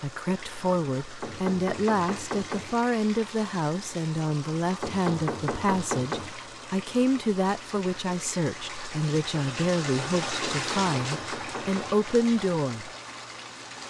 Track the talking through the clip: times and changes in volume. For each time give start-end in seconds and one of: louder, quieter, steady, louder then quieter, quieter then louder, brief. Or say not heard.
0.0-12.9 steady.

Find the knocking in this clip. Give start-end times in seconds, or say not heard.
1.2-2.8, 4.8-6.3, 10.4-12.0.